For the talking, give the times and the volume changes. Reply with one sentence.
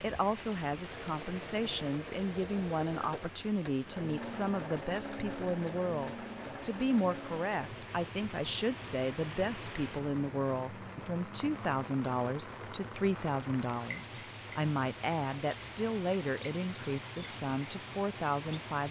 You can hear the talking from 0.0 to 18.8 s, at a steady volume.